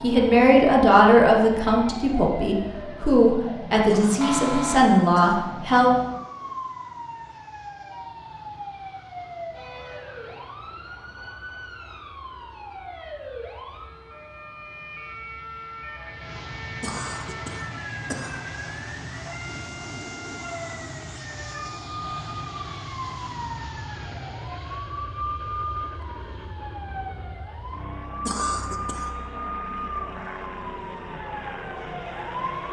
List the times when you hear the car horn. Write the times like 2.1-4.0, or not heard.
4.2-5.0.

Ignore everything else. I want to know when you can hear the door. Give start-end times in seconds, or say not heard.
not heard.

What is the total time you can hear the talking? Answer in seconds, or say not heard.
6 s.